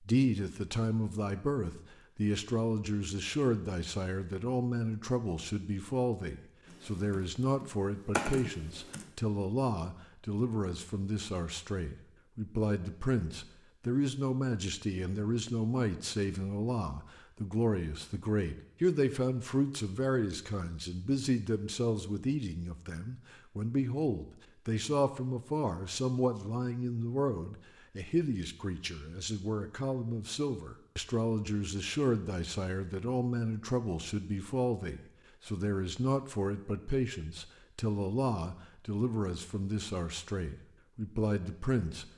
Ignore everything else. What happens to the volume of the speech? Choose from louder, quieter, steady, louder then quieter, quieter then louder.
steady.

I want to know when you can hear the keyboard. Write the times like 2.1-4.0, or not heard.
6.7-9.1.